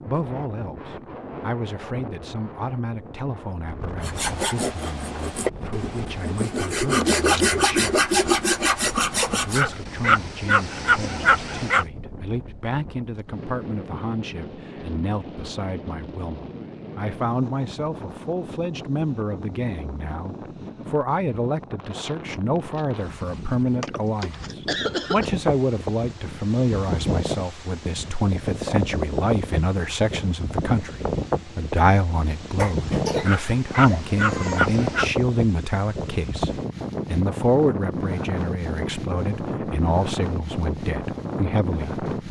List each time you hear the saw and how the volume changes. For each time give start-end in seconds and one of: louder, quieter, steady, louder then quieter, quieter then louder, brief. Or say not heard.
4.0-9.7 louder.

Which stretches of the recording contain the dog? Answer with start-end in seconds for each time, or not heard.
9.6-11.8, 33.2-35.0.